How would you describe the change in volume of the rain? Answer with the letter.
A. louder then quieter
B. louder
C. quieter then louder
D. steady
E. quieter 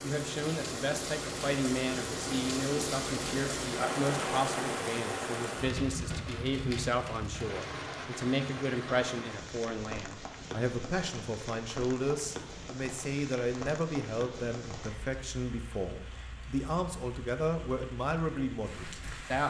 E.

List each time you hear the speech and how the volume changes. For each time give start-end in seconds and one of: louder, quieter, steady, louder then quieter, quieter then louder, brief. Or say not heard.
0.0-19.4 steady.